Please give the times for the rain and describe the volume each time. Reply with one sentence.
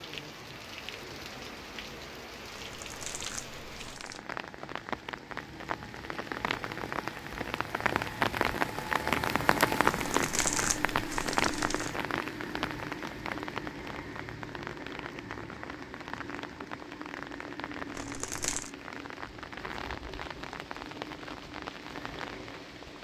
The rain can be heard from 0.0 to 22.9 s, getting louder then quieter.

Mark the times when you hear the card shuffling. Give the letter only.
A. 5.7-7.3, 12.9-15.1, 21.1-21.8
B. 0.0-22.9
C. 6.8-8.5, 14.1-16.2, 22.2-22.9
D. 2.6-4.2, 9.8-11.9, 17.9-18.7
D.